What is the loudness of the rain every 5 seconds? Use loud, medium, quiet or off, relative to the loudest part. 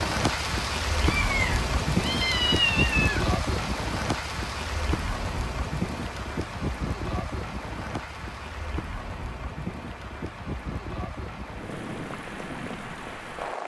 loud, medium, medium.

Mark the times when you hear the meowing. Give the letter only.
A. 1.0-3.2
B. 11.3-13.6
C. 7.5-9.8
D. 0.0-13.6
A.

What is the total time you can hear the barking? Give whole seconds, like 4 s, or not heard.
not heard.